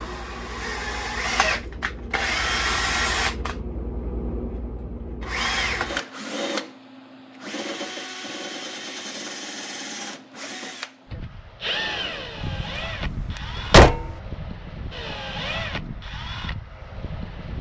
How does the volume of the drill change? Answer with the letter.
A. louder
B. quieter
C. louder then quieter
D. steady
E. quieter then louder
B.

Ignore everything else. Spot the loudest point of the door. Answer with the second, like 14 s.
14 s.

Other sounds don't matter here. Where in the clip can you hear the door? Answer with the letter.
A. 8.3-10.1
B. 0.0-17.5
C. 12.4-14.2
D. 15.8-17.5
C.